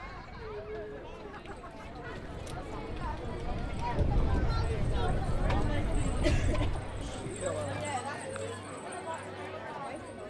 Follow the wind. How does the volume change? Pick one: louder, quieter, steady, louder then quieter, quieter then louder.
louder.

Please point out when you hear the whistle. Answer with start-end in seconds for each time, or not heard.
not heard.